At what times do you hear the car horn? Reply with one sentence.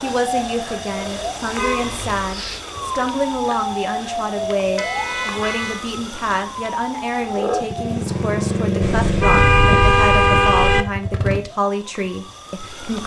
You can hear the car horn from 1.6 to 2.6 s, from 4.8 to 5.8 s and from 8.8 to 10.8 s.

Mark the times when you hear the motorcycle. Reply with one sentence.
You can hear the motorcycle from 7.6 to 11.4 s.